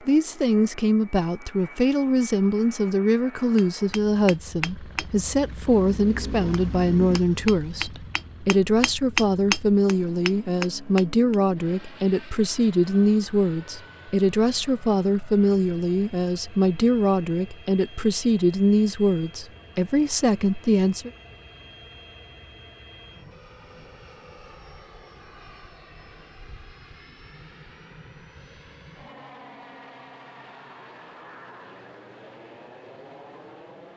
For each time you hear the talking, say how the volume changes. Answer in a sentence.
You can hear the talking from 0.1 to 21.1 s, at a steady volume.